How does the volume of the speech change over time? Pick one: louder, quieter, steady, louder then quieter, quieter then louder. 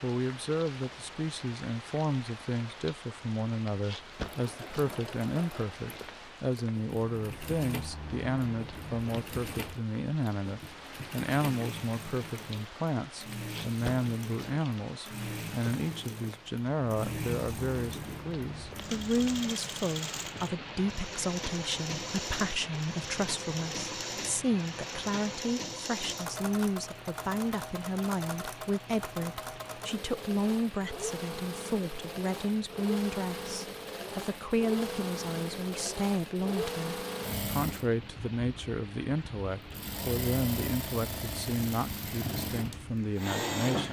steady.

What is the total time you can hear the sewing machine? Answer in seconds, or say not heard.
40 s.